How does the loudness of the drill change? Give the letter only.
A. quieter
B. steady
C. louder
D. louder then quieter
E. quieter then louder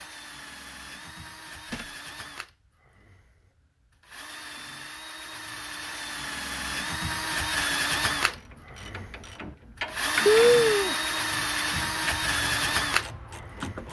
C.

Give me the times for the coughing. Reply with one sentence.
You can hear the coughing from 10.2 to 10.9 s.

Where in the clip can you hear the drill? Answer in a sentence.
You can hear the drill from 0.0 to 13.8 s.